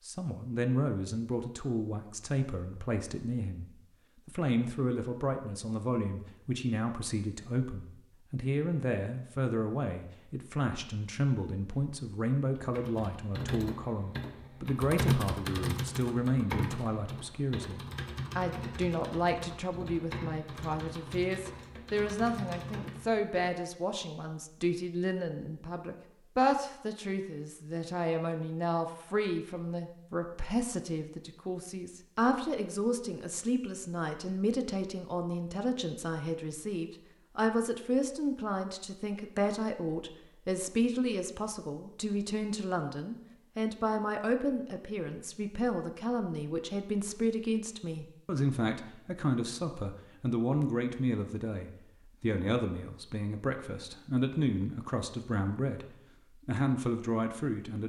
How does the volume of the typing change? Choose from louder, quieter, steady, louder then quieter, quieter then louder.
louder then quieter.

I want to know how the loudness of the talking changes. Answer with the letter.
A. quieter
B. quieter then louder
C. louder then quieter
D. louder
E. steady
E.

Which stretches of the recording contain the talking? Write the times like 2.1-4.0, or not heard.
0.1-3.6, 4.2-57.8.